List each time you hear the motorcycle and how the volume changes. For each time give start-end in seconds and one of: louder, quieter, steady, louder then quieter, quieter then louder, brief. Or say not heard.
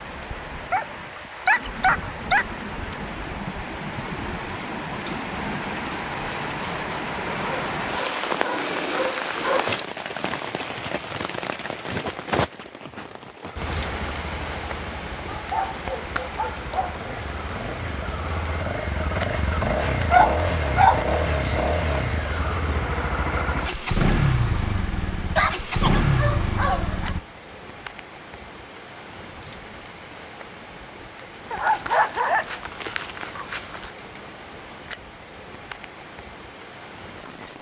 13.6-27.2 louder.